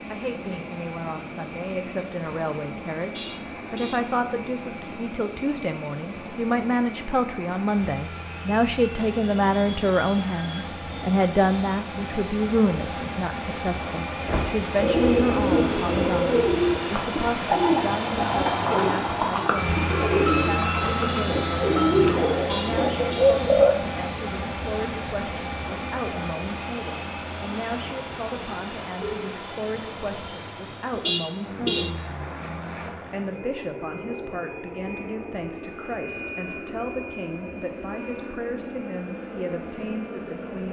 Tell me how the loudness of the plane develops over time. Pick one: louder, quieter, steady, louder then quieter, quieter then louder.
louder then quieter.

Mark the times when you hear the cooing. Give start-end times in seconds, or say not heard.
14.2-23.8.